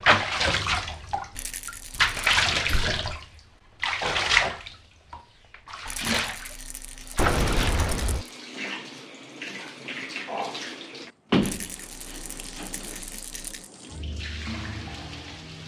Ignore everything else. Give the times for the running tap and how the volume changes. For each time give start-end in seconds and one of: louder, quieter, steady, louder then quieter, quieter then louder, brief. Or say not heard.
0.0-15.6 quieter.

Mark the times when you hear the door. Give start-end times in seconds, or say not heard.
2.5-3.0, 7.2-8.2, 11.3-12.9.